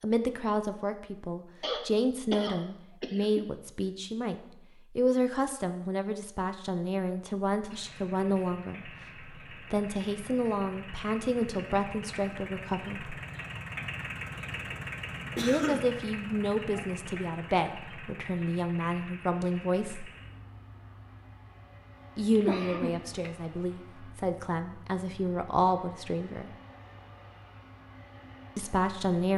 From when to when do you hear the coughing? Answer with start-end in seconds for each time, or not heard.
1.6-3.5, 15.3-15.9, 22.4-23.4.